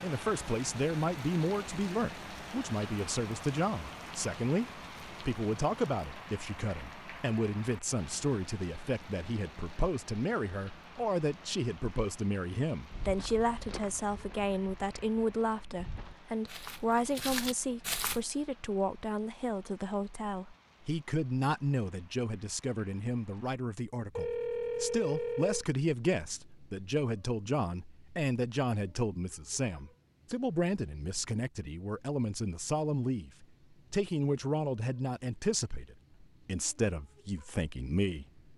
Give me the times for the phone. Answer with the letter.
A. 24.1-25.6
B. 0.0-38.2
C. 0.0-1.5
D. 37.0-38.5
A.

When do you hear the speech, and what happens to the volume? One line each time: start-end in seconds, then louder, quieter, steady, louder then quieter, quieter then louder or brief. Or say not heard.
0.0-38.2 steady.